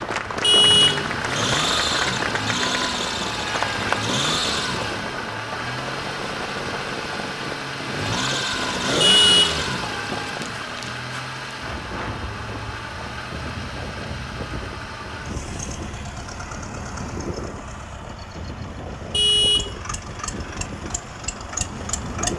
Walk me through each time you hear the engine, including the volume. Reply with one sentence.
The engine can be heard from 0.0 to 22.3 s, getting quieter.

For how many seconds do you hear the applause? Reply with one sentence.
The applause can be heard for 4 seconds in total.